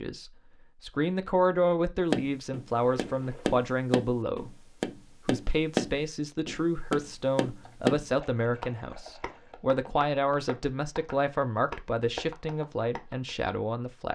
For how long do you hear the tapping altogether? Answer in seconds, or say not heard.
11 s.